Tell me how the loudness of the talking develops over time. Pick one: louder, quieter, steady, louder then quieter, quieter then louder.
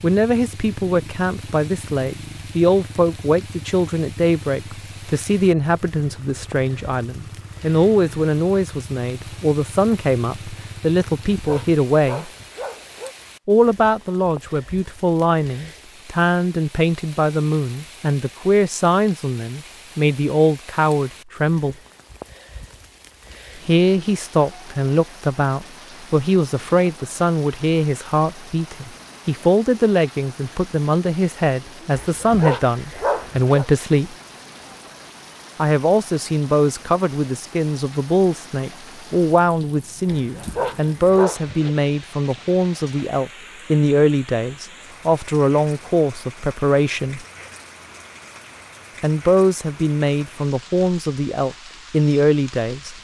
steady.